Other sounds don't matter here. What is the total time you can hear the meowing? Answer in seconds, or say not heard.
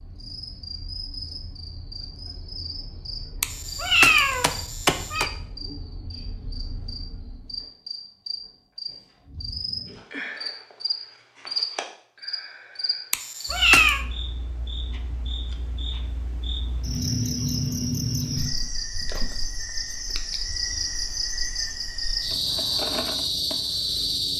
3 s.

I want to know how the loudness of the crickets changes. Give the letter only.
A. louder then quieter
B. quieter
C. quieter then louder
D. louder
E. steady
D.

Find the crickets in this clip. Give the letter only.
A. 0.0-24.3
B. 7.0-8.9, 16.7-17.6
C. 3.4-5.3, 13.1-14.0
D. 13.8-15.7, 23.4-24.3
A.